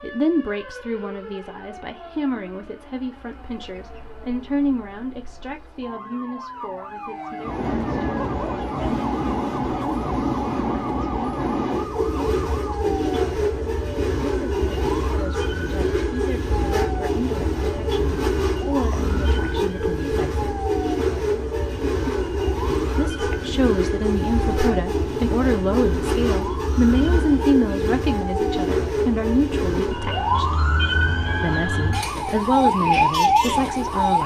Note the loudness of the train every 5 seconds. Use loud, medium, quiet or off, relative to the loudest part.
off, loud, loud, loud, loud, loud, quiet.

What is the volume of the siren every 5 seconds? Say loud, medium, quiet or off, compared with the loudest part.
quiet, quiet, quiet, quiet, quiet, quiet, loud.